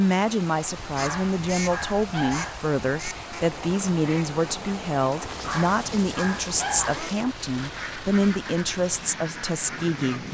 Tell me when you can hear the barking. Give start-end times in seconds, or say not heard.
0.8-3.3, 5.2-7.0.